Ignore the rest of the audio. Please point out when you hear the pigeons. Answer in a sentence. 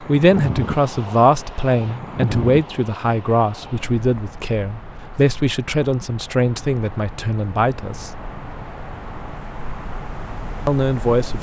The pigeons can't be heard in this clip.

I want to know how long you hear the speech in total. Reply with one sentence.
You can hear the speech for 9 seconds altogether.